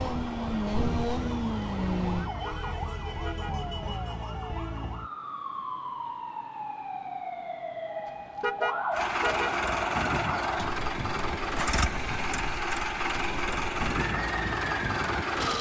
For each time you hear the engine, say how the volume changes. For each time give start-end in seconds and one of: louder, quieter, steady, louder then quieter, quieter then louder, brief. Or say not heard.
0.0-2.3 brief
8.9-15.5 steady.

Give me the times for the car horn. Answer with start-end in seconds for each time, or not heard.
2.4-3.6, 8.4-9.6.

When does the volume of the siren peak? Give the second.
9 s.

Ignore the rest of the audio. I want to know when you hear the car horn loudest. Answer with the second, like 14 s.
9 s.